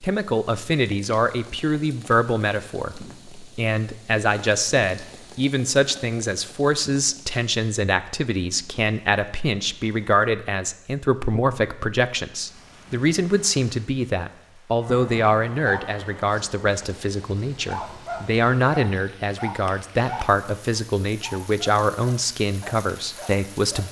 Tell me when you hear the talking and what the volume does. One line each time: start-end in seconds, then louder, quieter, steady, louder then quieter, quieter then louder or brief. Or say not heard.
0.0-23.8 steady.